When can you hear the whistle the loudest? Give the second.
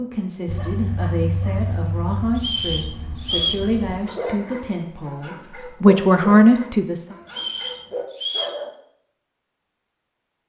3 s.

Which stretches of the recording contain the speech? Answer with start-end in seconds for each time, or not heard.
0.0-7.2.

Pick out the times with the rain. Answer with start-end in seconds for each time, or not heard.
not heard.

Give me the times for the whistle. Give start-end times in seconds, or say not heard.
2.4-3.6, 7.2-8.6.